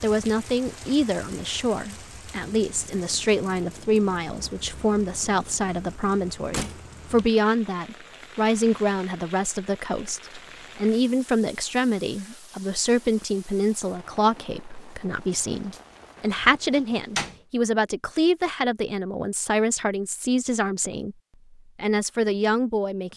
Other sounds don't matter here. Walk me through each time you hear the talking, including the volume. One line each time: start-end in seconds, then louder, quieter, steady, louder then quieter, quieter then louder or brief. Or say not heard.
0.0-21.1 steady
21.8-23.1 brief.